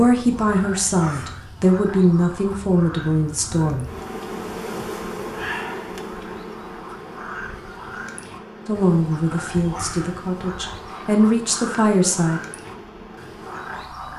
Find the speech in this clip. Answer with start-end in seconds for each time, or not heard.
0.0-3.9, 8.7-12.4.